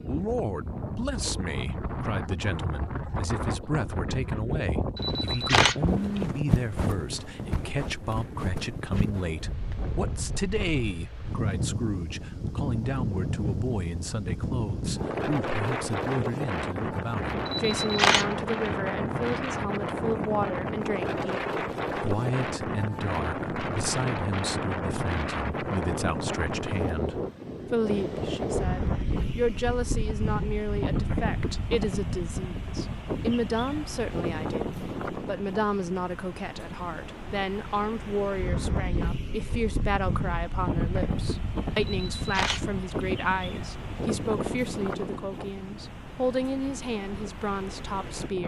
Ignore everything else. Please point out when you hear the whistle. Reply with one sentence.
You can't hear the whistle here.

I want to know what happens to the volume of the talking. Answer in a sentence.
The loudness of the talking stays about the same.